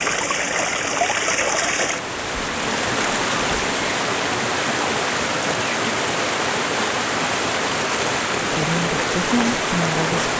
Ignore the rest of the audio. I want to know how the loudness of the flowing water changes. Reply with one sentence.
The loudness of the flowing water stays about the same.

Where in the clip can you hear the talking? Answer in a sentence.
You can hear the talking from 8.3 to 10.3 s.